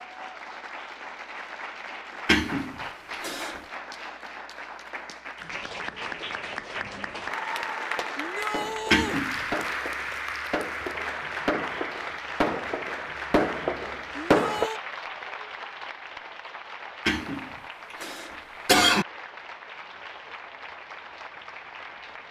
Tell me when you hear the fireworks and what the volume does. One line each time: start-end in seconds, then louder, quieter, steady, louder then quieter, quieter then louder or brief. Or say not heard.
8.0-14.7 louder.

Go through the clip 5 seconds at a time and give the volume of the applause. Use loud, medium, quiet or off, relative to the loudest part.
medium, loud, loud, medium, medium.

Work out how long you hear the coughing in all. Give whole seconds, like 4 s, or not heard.
4 s.